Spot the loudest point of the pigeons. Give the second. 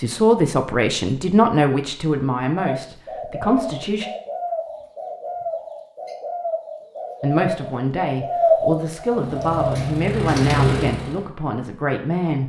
9 s.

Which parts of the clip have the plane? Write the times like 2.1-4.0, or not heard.
9.1-11.2.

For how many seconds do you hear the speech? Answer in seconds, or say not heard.
9 s.